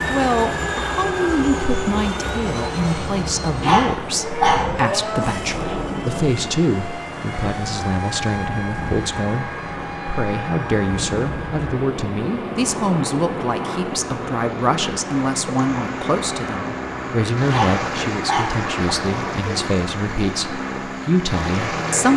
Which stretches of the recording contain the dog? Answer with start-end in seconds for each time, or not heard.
3.6-4.7, 5.5-6.0, 17.4-18.6.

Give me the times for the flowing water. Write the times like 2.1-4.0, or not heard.
0.0-22.1.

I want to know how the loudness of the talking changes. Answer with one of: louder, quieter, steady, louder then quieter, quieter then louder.
steady.